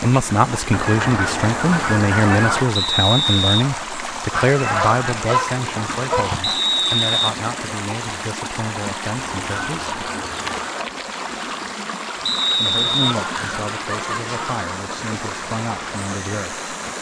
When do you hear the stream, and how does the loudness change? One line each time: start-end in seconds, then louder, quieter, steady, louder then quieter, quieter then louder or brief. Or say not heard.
0.0-16.9 steady.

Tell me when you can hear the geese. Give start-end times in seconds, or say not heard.
0.7-2.6, 4.3-6.6, 9.2-10.7, 12.9-14.7.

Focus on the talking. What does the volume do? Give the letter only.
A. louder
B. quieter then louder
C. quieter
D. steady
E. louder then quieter
C.